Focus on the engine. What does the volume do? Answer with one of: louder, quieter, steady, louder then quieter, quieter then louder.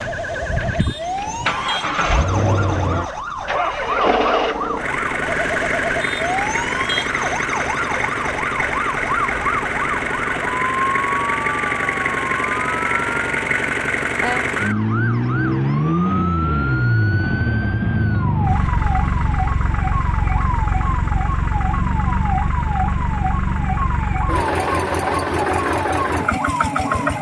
steady.